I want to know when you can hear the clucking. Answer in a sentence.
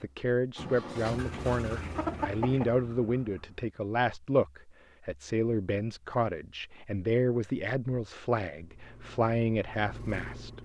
The clucking can be heard from 1.1 to 2.7 s.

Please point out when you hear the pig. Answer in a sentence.
The pig can't be heard in this clip.